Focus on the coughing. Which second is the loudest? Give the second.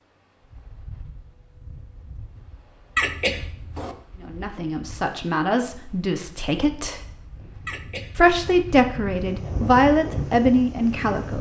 3 s.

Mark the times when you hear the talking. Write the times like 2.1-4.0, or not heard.
4.2-7.0, 8.2-11.3.